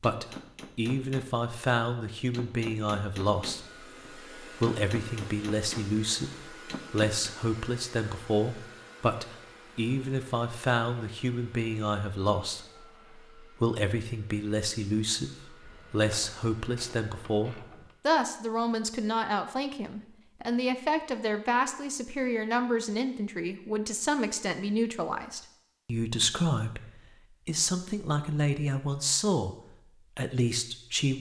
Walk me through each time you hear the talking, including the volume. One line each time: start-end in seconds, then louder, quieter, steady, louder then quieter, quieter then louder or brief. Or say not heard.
0.0-29.6 steady
30.1-31.1 brief.